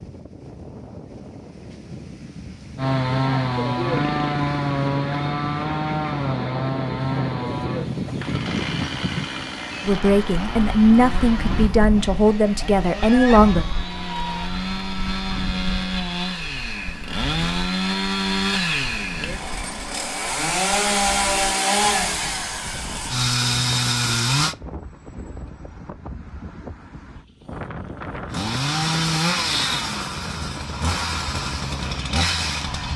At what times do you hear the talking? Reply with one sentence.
You can hear the talking from 9.8 to 13.7 s.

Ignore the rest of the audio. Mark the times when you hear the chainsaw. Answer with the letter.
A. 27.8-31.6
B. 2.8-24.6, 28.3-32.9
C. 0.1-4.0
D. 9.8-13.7
B.